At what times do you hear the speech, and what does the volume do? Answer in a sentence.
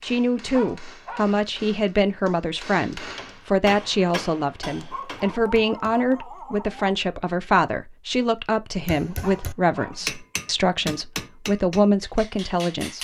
The speech can be heard from 0.0 to 12.9 s, at a steady volume.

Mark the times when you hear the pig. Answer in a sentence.
The pig can't be heard in this clip.